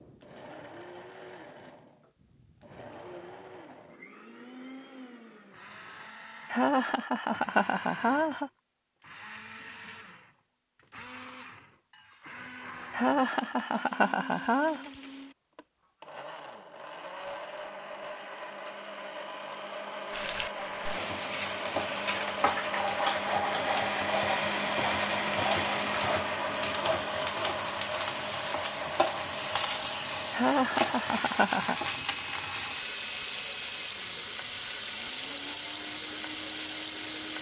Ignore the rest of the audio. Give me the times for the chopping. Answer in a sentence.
The chopping can't be heard in this clip.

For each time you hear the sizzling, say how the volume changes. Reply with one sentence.
You can hear the sizzling from 20.1 to 37.3 s, at a steady volume.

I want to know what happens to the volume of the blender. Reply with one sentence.
The volume of the blender goes up, then down.